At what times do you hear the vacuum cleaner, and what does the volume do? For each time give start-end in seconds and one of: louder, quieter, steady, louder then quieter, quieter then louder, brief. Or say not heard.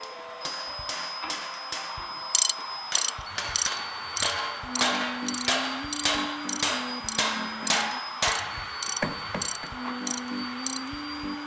0.0-11.4 steady.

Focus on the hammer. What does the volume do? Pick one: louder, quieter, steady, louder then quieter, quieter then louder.
louder.